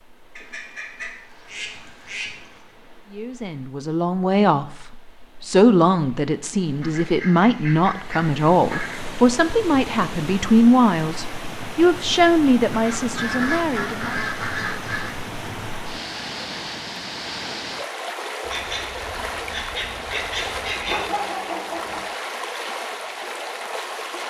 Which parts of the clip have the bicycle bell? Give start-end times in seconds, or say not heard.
not heard.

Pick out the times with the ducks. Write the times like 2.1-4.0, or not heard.
0.3-2.6, 6.8-9.0, 12.7-15.2, 18.4-21.0.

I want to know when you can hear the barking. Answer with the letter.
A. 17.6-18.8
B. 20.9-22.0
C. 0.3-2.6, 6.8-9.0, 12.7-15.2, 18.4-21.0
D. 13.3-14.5
B.